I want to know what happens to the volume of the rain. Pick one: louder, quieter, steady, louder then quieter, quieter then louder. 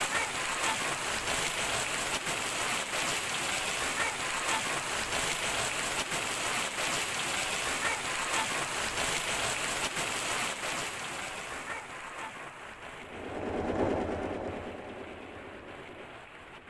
quieter.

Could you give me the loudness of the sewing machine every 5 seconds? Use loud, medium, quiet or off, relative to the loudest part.
off, off, loud, quiet.